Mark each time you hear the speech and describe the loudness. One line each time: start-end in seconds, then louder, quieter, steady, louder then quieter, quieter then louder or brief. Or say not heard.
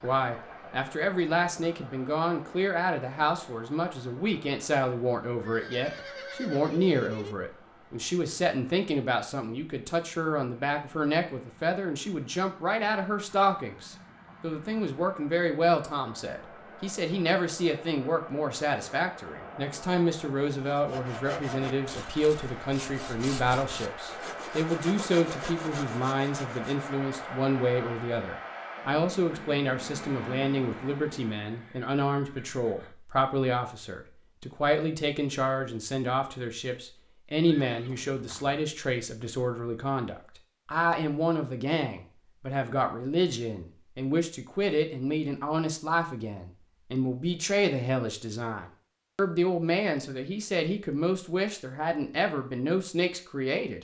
0.0-53.8 steady.